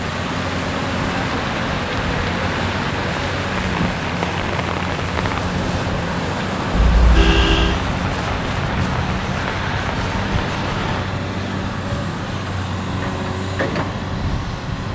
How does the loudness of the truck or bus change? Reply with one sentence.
The volume of the truck or bus stays about the same.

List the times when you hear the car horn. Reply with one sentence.
The car horn can be heard from 6.7 to 7.8 s.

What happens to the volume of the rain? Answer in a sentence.
The volume of the rain stays about the same.